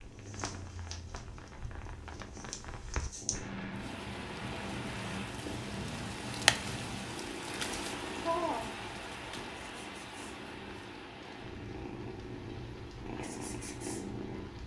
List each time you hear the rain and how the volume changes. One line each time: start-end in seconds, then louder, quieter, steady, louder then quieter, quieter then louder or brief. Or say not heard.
0.0-14.6 louder then quieter.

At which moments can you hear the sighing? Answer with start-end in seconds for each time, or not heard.
8.2-8.8.